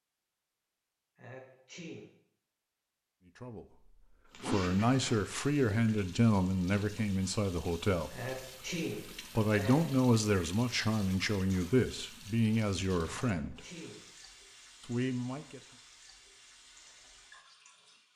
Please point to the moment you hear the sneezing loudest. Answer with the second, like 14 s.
9 s.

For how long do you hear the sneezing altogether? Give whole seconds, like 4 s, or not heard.
4 s.